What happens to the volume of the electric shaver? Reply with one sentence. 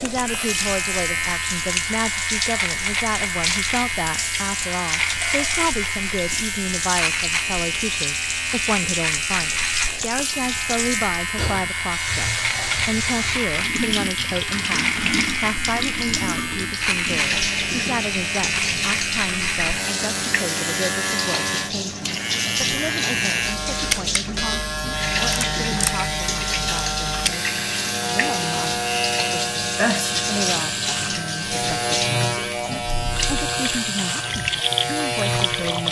The loudness of the electric shaver stays about the same.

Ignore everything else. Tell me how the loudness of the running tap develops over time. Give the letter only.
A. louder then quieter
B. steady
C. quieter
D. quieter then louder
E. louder
B.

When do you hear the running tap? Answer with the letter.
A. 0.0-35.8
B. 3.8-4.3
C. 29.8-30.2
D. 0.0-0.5
A.